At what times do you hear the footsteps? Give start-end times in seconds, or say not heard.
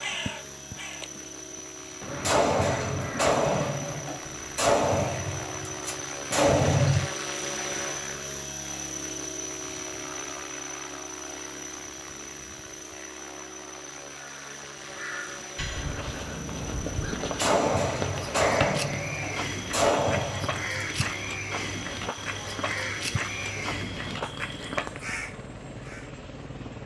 15.7-24.9.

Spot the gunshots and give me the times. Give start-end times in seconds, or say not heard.
2.2-7.0, 17.4-20.9.